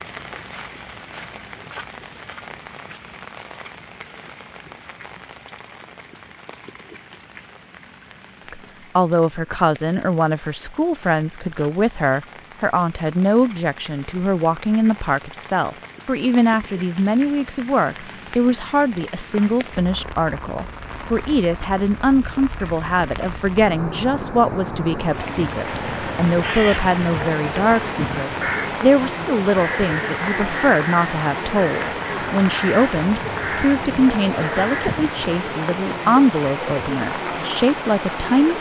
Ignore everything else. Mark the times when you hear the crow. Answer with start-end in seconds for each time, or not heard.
25.6-35.0.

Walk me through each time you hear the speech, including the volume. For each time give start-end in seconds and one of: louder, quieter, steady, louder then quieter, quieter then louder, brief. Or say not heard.
8.5-38.5 steady.